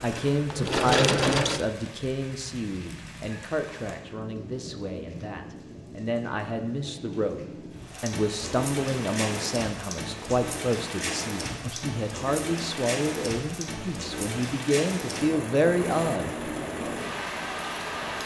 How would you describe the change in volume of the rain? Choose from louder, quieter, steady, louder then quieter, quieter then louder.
louder.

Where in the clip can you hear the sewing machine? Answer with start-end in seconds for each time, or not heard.
0.0-1.6.